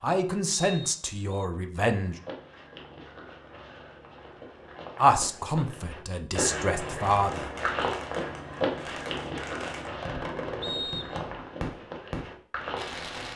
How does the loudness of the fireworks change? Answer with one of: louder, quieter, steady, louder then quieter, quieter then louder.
louder.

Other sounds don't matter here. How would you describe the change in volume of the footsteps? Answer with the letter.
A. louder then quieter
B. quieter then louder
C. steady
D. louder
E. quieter
A.